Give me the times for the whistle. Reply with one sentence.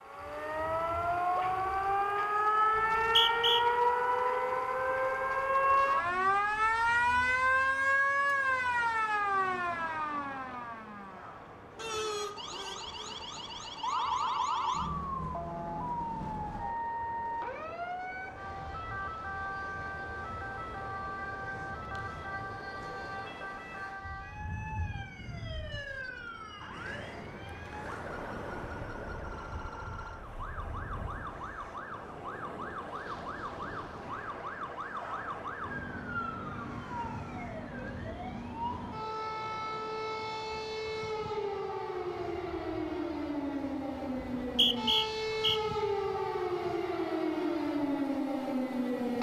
The whistle can be heard from 2.8 to 3.6 s and from 44.1 to 45.6 s.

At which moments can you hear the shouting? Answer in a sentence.
You can't hear the shouting here.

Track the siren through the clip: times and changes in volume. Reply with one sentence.
The siren can be heard from 0.0 to 49.1 s, getting quieter then louder.